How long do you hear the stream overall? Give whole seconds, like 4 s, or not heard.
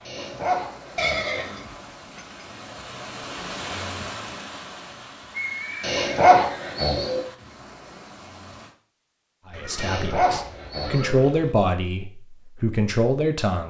9 s.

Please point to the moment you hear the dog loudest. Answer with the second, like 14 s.
6 s.